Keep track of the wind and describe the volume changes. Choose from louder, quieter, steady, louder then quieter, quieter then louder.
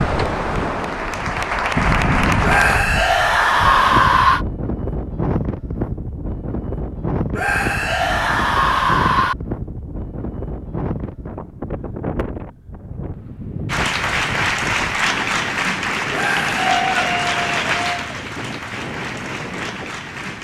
quieter.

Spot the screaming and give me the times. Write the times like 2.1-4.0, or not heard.
2.4-4.5, 7.3-9.3, 16.1-16.7.